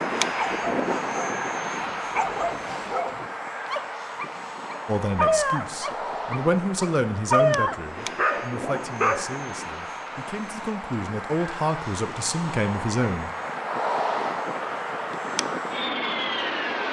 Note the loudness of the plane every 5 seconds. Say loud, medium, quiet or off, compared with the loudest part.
loud, medium, loud, loud.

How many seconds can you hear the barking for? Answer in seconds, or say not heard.
9 s.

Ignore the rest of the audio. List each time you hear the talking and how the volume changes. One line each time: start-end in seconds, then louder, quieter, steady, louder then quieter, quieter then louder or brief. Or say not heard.
4.8-13.3 quieter then louder.